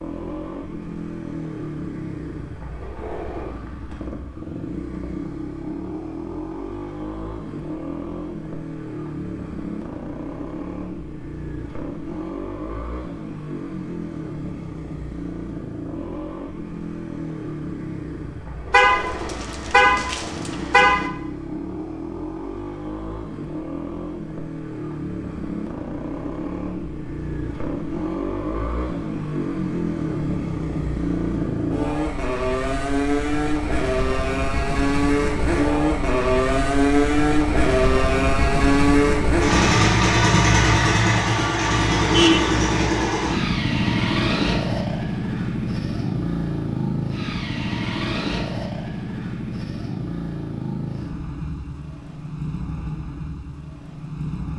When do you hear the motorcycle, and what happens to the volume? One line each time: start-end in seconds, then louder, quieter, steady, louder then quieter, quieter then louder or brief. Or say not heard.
0.0-54.5 louder then quieter.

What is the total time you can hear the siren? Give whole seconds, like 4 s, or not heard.
not heard.